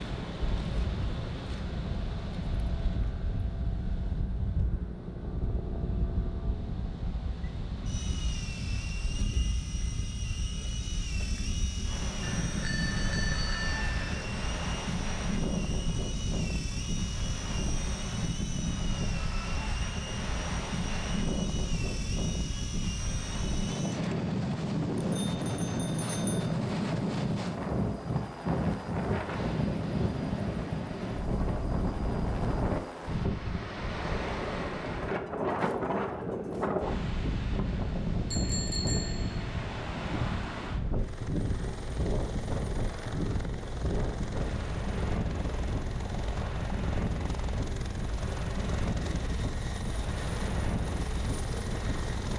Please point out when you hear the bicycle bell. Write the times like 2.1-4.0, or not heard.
12.2-14.2, 25.2-26.6, 38.3-39.5.